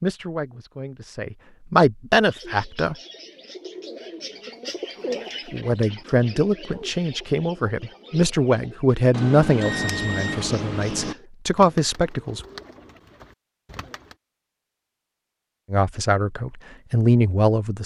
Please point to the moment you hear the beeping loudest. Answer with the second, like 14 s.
10 s.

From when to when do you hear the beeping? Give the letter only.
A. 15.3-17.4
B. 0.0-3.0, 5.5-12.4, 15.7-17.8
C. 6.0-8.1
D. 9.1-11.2
D.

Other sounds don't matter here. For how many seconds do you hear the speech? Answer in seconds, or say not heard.
12 s.